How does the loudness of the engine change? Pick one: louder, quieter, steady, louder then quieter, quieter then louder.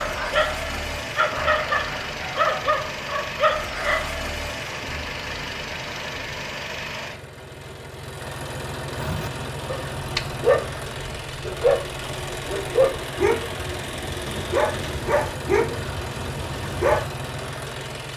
steady.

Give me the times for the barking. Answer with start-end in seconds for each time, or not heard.
0.0-4.3, 8.9-17.1.